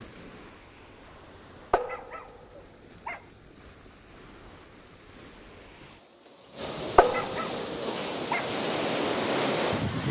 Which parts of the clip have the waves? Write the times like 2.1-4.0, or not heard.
0.0-10.0.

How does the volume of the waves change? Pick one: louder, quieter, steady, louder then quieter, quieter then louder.
louder.